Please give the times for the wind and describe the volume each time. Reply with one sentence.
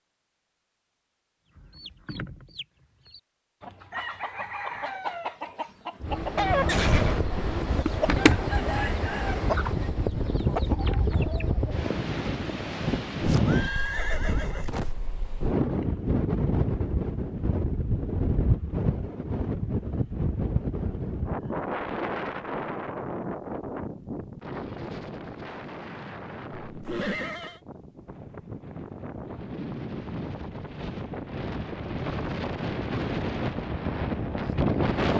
The wind can be heard from 6.0 to 35.1 s, getting quieter then louder.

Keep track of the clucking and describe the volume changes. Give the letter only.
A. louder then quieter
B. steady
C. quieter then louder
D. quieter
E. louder
A.